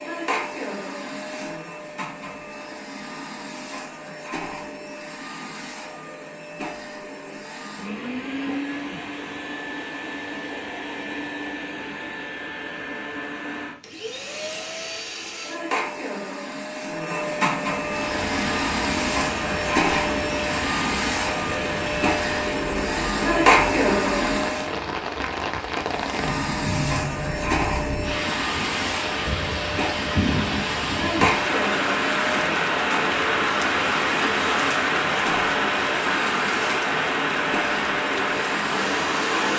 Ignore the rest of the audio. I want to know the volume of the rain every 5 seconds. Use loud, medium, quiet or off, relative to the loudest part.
off, off, off, medium, medium, medium, loud, loud.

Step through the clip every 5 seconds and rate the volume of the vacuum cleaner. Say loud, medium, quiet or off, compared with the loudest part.
medium, medium, medium, loud, loud, medium, medium, medium.